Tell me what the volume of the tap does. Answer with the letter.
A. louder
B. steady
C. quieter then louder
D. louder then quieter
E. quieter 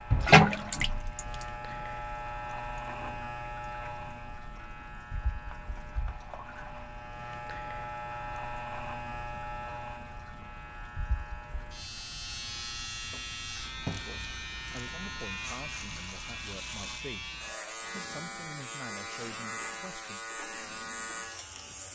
E.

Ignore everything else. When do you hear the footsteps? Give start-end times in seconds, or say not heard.
not heard.